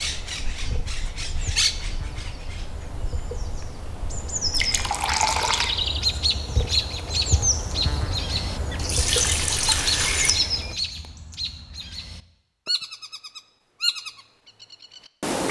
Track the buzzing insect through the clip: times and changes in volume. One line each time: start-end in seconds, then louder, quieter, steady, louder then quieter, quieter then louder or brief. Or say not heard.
0.0-10.8 louder.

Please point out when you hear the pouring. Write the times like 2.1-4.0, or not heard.
4.5-5.7, 8.8-10.3.